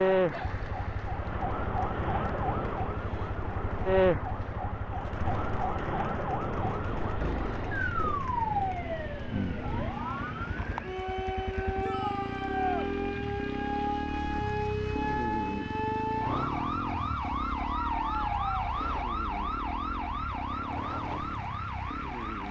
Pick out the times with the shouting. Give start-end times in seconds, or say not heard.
11.8-12.9.